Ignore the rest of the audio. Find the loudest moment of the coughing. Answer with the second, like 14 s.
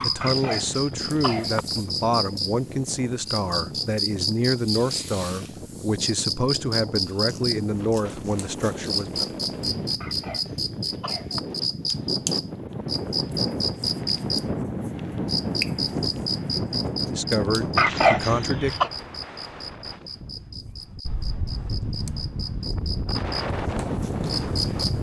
18 s.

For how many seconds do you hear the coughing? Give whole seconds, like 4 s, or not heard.
4 s.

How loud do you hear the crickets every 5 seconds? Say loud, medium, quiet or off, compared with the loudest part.
loud, loud, loud, loud, medium.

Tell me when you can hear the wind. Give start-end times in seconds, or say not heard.
0.0-24.9.